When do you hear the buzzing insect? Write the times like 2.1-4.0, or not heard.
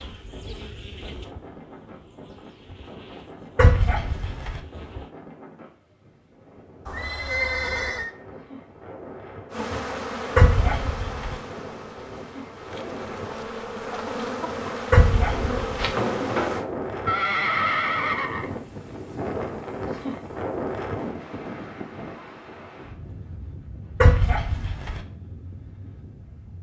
0.0-5.2, 9.5-16.6.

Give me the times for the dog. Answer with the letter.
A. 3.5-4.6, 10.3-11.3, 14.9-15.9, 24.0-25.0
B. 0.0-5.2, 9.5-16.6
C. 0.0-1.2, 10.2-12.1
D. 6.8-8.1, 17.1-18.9
A.